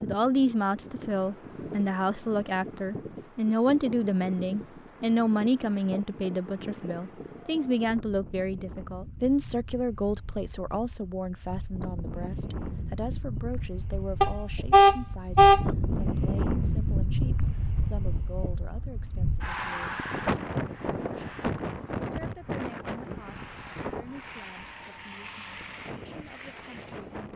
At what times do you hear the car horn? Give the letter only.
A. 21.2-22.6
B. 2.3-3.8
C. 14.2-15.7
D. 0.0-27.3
C.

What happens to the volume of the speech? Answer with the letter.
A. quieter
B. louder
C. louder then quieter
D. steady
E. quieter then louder
A.